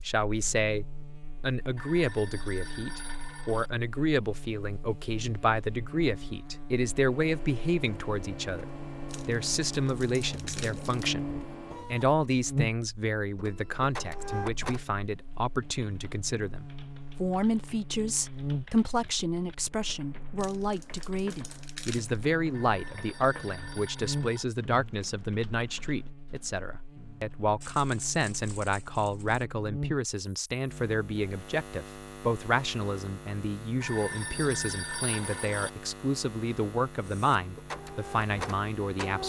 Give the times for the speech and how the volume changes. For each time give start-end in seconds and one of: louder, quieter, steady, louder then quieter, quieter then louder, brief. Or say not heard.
0.1-39.2 steady.